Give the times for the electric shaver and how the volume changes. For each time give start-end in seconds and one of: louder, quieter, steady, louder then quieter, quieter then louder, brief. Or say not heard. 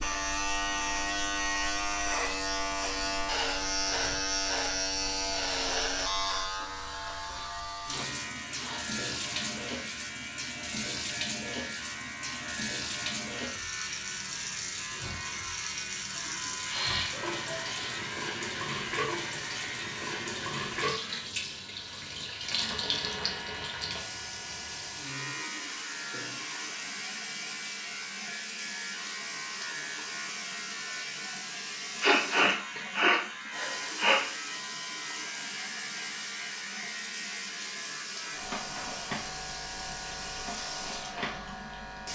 0.0-42.0 quieter.